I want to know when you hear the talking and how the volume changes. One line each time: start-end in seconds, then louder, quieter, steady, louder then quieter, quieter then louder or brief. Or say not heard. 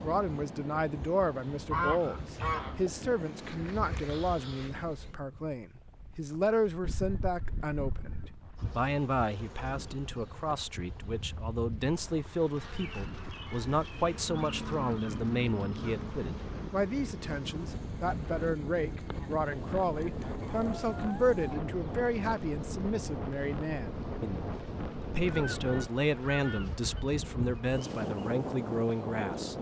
0.0-29.5 steady.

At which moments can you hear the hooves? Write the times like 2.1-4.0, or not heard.
not heard.